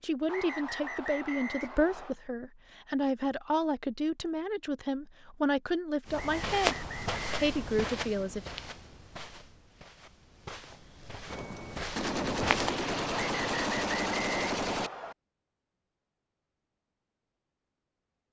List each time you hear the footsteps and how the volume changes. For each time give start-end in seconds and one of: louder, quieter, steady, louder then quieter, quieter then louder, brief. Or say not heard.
6.0-12.8 quieter then louder.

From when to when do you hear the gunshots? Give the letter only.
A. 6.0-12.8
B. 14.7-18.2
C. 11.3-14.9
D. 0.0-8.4
C.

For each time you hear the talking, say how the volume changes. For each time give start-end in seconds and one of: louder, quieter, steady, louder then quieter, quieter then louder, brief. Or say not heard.
0.0-8.4 steady.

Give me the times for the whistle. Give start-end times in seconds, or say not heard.
0.2-2.1, 6.1-7.8, 13.1-15.2.